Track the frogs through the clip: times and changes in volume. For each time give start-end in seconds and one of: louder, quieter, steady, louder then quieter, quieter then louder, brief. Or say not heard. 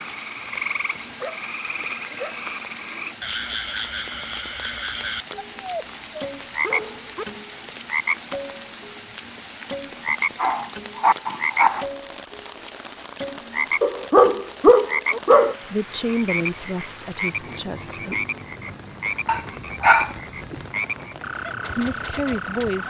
0.0-22.8 steady.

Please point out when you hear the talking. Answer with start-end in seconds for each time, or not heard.
15.7-18.2, 21.8-22.8.